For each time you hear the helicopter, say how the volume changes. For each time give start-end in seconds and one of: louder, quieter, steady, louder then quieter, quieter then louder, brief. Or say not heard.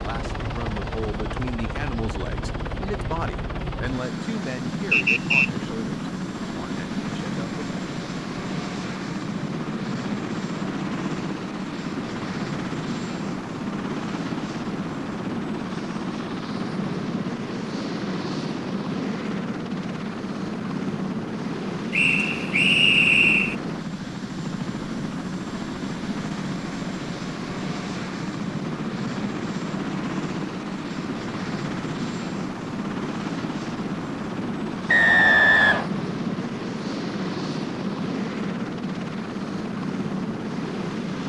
0.0-41.2 steady.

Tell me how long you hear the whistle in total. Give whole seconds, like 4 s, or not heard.
3 s.